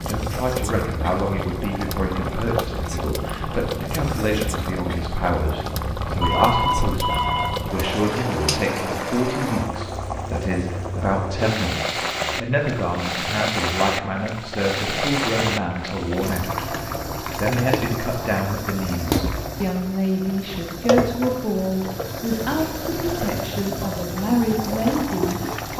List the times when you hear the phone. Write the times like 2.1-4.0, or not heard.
5.8-7.7.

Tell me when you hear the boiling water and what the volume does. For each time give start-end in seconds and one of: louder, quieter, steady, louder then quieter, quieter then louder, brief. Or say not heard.
0.0-25.7 steady.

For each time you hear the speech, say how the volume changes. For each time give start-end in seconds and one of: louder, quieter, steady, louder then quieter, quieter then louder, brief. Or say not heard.
0.1-25.7 steady.